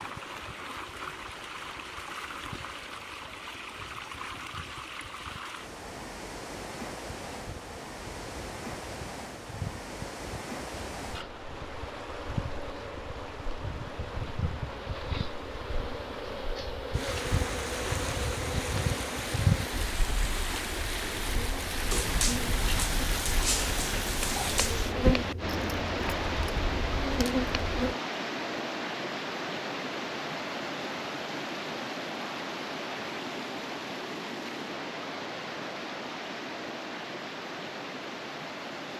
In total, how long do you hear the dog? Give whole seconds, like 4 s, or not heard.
3 s.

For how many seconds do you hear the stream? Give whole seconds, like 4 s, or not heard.
39 s.